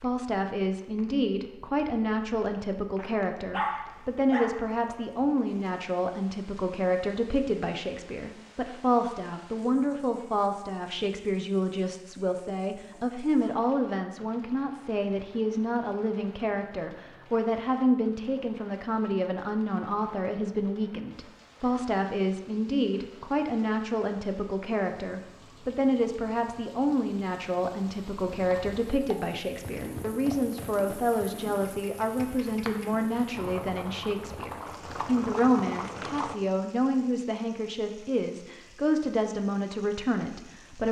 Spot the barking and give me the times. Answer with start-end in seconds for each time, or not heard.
3.0-5.2.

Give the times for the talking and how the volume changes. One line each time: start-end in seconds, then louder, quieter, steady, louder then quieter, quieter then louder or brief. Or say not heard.
0.0-40.8 steady.